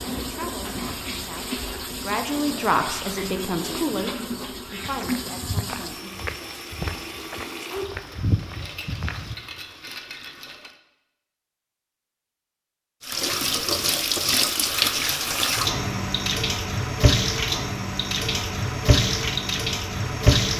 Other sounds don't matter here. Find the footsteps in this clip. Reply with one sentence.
The footsteps can be heard from 4.8 to 9.3 s.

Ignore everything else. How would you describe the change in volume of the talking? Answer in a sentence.
The loudness of the talking goes up, then down.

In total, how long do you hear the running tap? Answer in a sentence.
The running tap can be heard for 18 seconds in total.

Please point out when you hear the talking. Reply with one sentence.
The talking can be heard from 0.0 to 6.1 s.